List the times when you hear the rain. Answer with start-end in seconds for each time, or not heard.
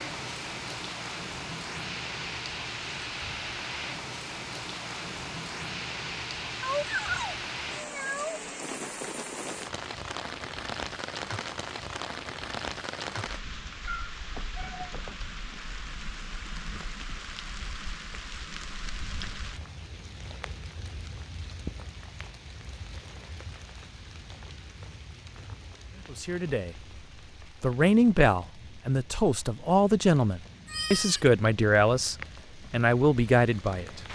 0.0-34.1.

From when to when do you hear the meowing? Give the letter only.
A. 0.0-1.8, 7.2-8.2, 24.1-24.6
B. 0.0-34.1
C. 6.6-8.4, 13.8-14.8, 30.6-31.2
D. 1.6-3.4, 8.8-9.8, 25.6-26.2
C.